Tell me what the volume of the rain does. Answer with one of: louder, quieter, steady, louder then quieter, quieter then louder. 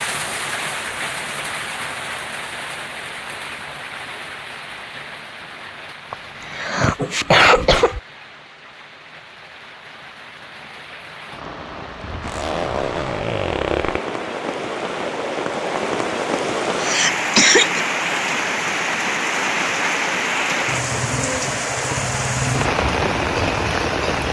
quieter then louder.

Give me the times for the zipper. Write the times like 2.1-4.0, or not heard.
12.2-14.0.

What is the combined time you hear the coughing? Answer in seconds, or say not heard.
3 s.